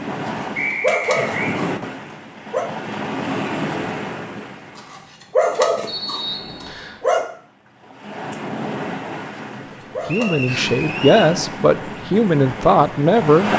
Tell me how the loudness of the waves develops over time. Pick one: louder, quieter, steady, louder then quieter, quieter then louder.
quieter then louder.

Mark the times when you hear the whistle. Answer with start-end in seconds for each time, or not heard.
0.6-1.6, 5.8-7.0, 10.1-11.3.